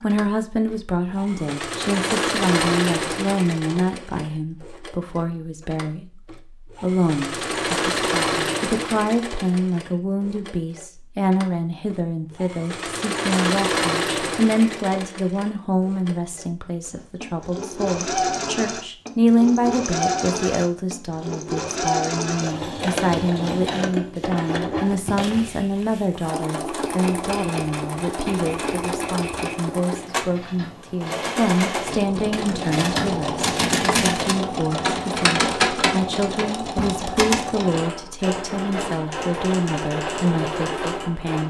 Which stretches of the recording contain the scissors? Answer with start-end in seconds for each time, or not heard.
not heard.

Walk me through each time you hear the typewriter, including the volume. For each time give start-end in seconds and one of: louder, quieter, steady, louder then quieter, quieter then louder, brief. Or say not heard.
26.9-37.5 louder.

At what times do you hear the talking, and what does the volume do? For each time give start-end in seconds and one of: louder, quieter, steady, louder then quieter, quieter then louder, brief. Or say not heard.
0.0-41.4 steady.